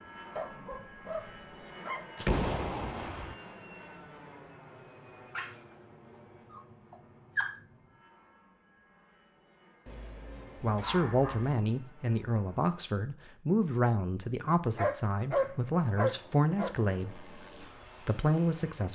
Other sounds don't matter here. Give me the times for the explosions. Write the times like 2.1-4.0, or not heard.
2.1-3.4.